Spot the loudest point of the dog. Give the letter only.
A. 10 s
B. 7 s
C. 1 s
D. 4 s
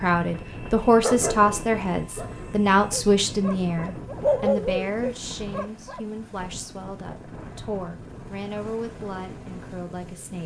D.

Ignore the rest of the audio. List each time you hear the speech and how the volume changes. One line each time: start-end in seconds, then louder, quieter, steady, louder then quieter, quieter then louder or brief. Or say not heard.
0.0-10.4 quieter.